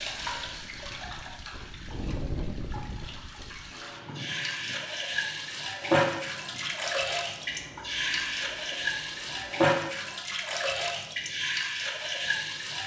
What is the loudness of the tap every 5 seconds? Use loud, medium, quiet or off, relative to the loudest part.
medium, loud, loud.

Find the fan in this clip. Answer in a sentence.
The fan can be heard from 0.0 to 9.6 s.